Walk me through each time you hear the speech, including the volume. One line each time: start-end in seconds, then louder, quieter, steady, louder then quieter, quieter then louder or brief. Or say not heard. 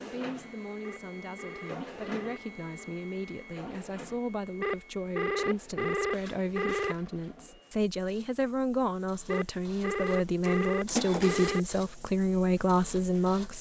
0.0-13.5 louder.